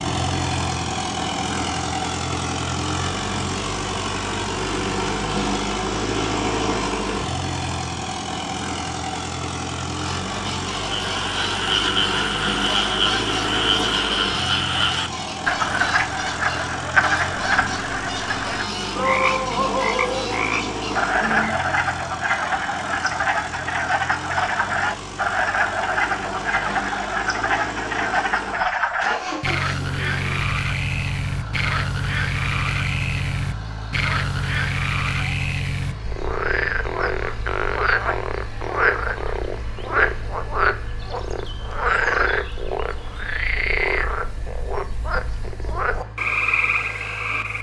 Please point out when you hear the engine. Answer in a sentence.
You can hear the engine from 0.0 to 47.5 s.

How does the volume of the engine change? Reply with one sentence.
The loudness of the engine goes down.